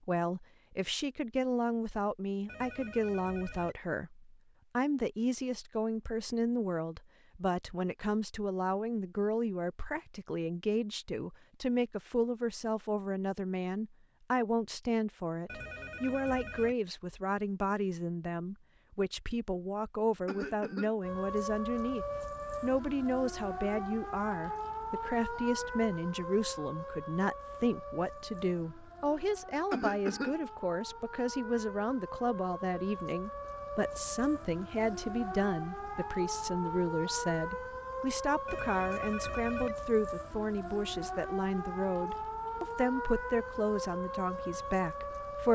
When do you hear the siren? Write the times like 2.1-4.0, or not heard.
21.0-45.4.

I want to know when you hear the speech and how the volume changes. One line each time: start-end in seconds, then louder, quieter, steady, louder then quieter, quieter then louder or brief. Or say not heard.
0.1-45.4 steady.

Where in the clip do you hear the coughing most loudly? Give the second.
30 s.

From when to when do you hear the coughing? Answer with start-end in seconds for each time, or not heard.
20.2-21.0, 29.7-30.4.